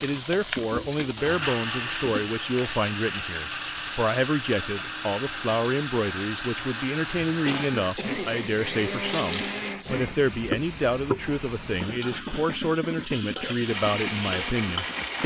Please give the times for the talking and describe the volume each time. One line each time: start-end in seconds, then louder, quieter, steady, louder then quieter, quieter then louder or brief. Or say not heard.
0.0-15.2 steady.